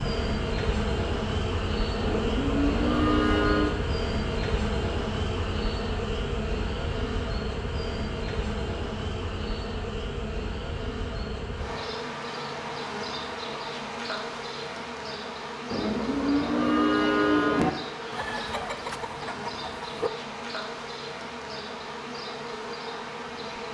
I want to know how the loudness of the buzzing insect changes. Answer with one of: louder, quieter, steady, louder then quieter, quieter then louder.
quieter.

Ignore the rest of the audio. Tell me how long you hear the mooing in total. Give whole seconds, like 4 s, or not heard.
4 s.